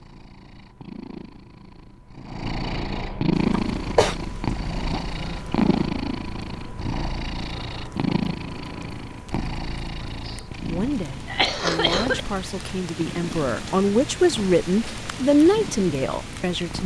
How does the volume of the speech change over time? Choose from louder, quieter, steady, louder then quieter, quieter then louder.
louder.